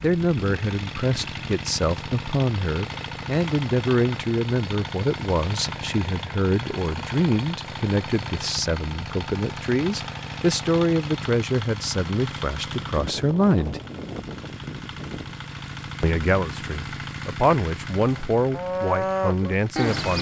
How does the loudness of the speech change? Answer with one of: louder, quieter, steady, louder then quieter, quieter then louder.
steady.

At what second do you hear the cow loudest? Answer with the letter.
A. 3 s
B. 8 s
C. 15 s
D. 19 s
D.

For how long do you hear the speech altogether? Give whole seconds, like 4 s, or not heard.
18 s.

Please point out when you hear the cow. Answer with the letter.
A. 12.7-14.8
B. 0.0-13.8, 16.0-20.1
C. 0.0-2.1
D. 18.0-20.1
D.